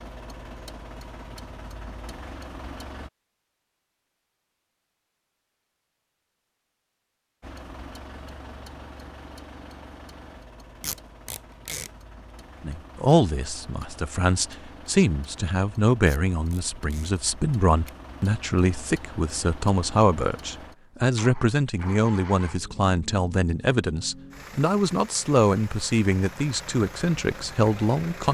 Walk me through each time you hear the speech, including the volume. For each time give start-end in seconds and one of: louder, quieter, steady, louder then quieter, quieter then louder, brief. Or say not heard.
12.6-28.2 steady.